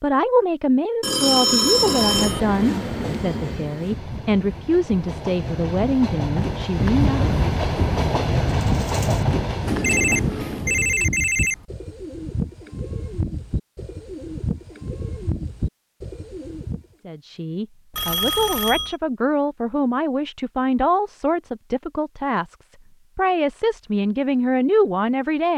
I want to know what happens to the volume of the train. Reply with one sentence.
The volume of the train goes down, then up.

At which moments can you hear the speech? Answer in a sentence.
You can hear the speech from 0.0 to 7.4 s and from 17.1 to 25.5 s.